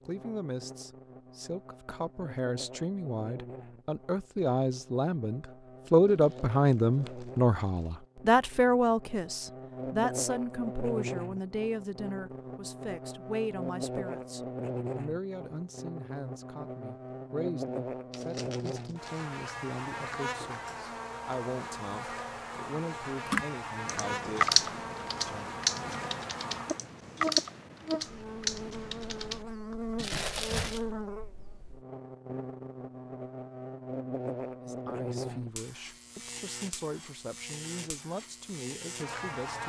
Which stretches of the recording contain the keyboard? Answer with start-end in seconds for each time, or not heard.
23.2-29.8.